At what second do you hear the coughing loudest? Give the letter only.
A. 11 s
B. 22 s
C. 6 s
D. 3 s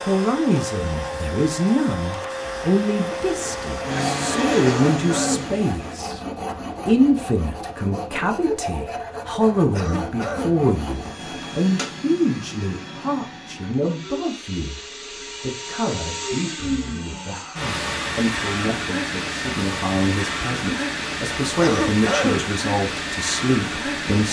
B.